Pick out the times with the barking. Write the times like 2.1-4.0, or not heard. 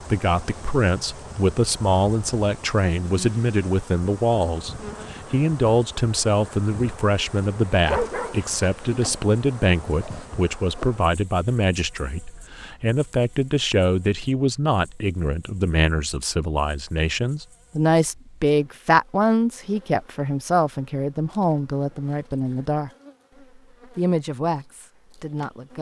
7.8-9.2.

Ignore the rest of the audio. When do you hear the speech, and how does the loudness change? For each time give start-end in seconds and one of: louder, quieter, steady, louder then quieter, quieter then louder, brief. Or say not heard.
0.1-22.9 steady
23.9-25.7 brief.